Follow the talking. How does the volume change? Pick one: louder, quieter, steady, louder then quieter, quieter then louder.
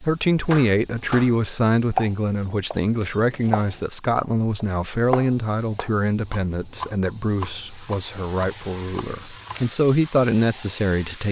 quieter then louder.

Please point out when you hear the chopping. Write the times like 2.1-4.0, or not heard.
0.2-9.7.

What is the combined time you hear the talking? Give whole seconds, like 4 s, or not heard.
11 s.